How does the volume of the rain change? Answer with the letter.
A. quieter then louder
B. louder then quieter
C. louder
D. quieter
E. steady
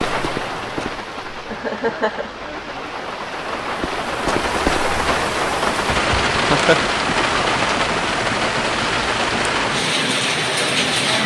C.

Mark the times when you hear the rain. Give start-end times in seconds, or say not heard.
0.0-11.2.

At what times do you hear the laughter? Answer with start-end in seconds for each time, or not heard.
1.5-2.4, 5.8-6.8.